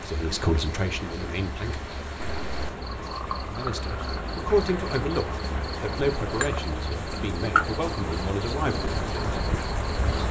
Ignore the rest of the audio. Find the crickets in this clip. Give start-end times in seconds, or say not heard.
0.0-10.2.